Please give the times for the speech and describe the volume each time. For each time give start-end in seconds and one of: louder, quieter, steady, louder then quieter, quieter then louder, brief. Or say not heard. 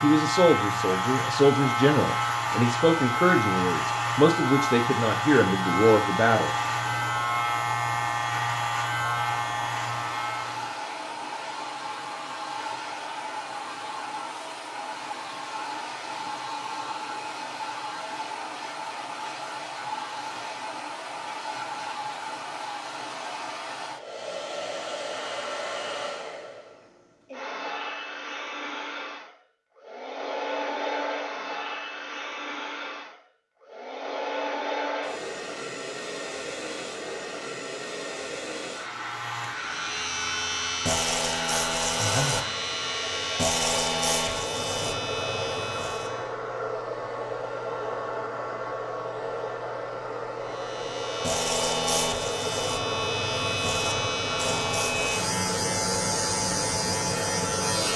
0.0-6.5 steady.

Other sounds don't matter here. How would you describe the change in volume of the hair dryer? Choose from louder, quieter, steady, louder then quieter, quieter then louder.
steady.